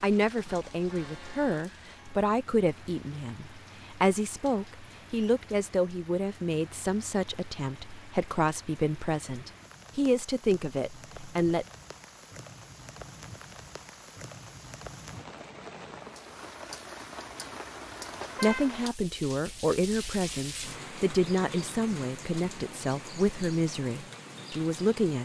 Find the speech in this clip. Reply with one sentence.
You can hear the speech from 0.0 to 11.7 s and from 18.4 to 25.2 s.